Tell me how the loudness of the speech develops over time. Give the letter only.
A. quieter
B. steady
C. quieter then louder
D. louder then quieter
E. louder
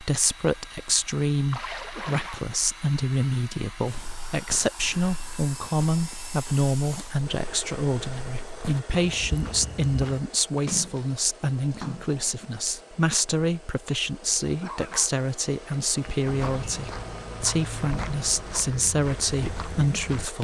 B.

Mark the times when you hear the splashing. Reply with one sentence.
The splashing can be heard from 1.5 to 2.5 s and from 10.6 to 12.4 s.